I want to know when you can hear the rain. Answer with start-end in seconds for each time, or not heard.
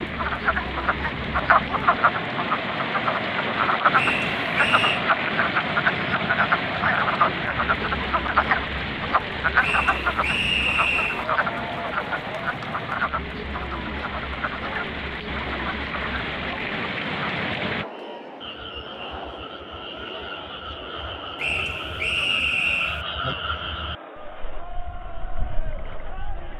0.0-17.9.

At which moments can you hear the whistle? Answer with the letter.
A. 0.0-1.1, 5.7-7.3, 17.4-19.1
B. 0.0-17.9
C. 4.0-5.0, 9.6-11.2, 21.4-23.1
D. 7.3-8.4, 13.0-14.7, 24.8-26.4
C.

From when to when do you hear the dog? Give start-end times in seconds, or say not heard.
not heard.